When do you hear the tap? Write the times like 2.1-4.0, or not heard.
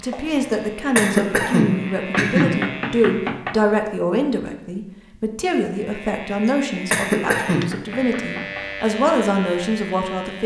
not heard.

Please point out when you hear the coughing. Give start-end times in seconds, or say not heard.
0.1-2.6, 6.0-7.7.